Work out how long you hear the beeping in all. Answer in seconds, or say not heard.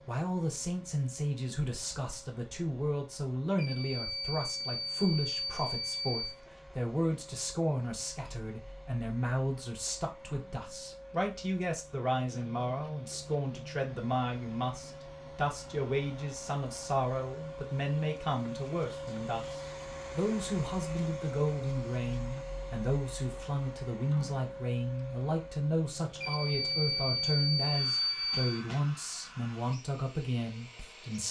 5 s.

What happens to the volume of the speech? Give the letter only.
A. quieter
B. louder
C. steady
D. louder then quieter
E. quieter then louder
C.